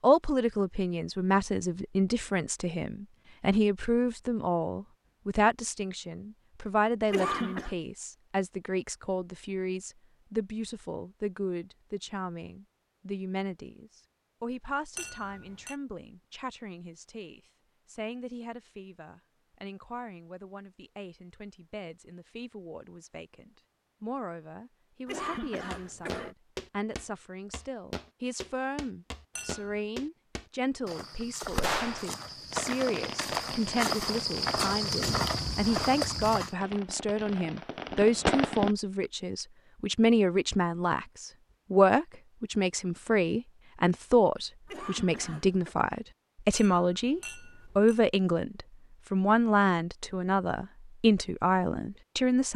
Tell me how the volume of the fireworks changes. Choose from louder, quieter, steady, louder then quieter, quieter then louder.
quieter then louder.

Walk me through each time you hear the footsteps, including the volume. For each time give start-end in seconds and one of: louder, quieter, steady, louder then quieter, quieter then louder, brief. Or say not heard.
25.7-36.5 louder.